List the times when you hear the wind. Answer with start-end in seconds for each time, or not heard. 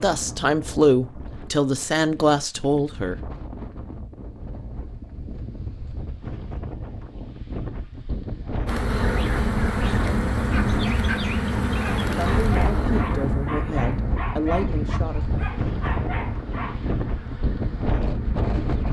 0.0-18.8.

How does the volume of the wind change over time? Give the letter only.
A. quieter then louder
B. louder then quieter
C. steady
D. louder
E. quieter
D.